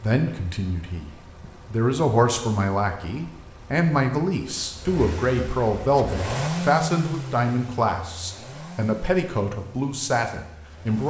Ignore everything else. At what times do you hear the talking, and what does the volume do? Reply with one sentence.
You can hear the talking from 0.0 to 11.0 s, at a steady volume.